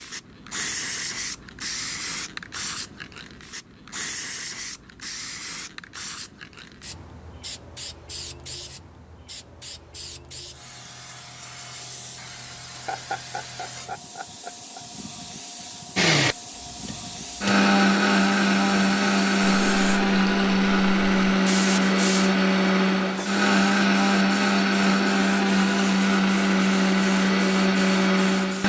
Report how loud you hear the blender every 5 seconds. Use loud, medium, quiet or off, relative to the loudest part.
off, off, off, loud, loud, loud.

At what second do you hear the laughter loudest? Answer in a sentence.
The volume of the laughter peaks at 13 seconds.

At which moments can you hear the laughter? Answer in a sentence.
You can hear the laughter from 12.7 to 14.8 s.